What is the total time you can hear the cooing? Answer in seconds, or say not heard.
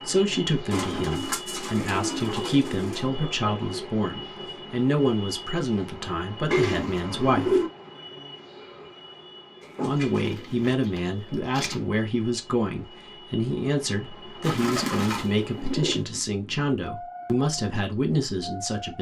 7 s.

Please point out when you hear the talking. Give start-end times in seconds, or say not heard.
0.1-7.7, 9.8-18.9.